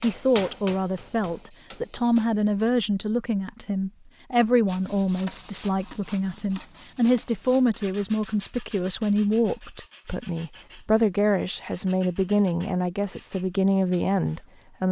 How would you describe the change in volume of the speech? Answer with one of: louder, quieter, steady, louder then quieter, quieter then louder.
steady.